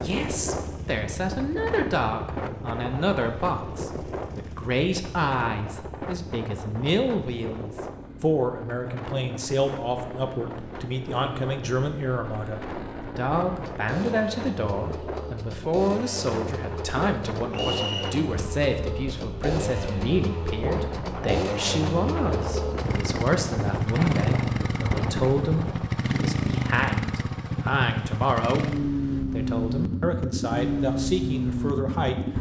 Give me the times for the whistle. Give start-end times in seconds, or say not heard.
17.5-18.1.